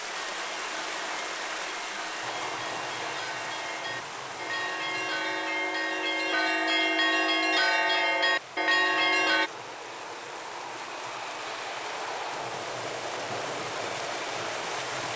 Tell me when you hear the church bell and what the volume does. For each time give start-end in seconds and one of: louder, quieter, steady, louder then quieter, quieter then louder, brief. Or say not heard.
0.1-9.5 louder.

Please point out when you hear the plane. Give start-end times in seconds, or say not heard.
2.2-15.1.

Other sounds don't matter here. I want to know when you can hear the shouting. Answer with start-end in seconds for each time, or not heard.
not heard.